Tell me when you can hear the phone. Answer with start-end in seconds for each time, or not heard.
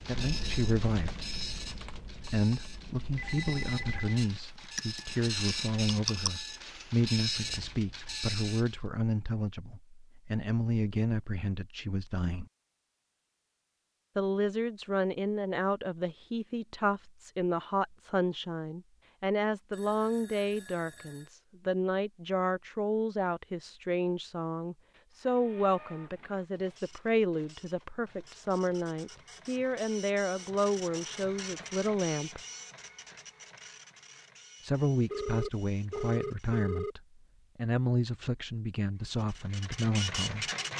3.1-4.2, 19.7-21.3, 35.1-37.0.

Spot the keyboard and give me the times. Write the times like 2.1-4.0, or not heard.
0.1-6.3.